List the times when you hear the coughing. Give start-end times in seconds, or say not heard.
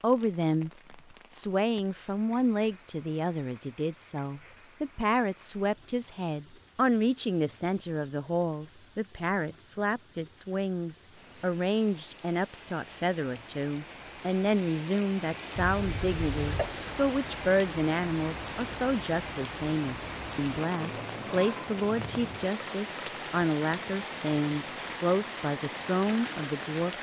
15.6-16.9.